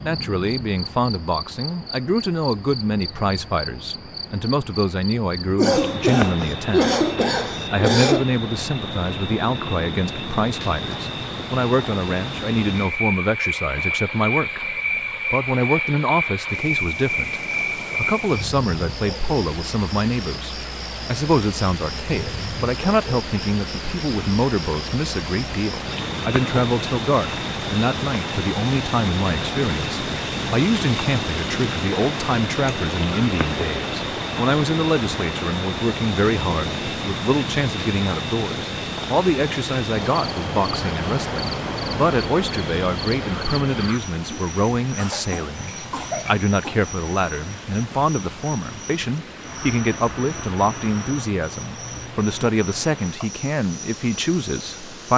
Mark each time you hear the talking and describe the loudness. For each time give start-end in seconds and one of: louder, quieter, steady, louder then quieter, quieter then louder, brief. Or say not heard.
0.0-7.0 steady
7.7-55.1 steady.